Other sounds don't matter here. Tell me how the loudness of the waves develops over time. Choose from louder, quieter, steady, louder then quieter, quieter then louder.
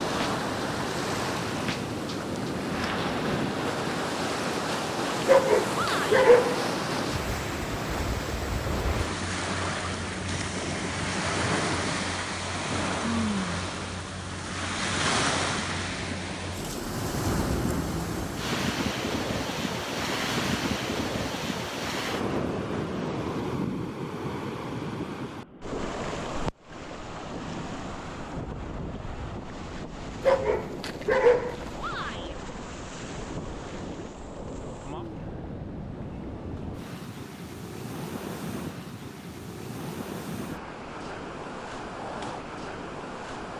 quieter.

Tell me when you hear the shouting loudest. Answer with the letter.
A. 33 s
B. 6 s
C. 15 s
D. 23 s
B.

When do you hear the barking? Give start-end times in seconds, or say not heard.
5.2-6.7, 30.2-31.6.